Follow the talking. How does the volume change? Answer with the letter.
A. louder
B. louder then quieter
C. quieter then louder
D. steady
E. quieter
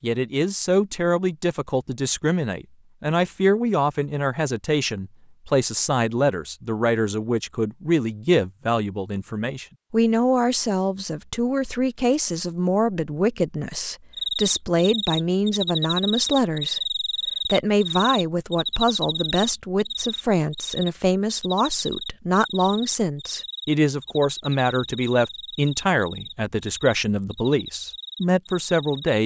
D.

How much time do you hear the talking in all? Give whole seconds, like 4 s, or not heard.
29 s.